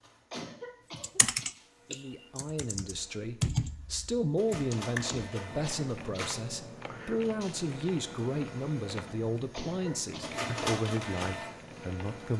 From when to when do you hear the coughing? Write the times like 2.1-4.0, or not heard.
0.3-1.5, 5.0-6.2, 9.5-10.4.